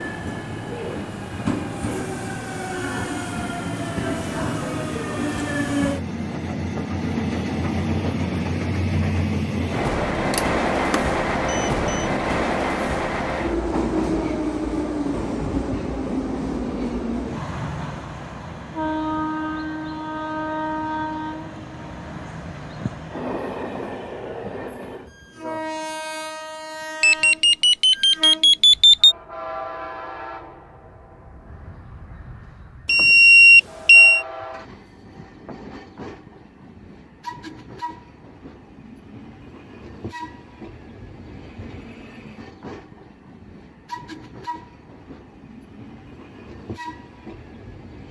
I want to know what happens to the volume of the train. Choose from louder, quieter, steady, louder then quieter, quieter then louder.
quieter.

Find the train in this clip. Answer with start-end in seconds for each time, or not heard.
0.0-48.0.